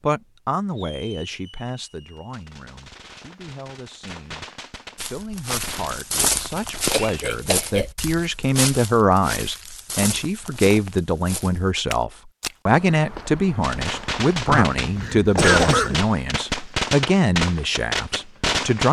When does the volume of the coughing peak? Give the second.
16 s.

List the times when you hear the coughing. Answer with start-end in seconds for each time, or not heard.
6.8-7.9, 14.4-16.0.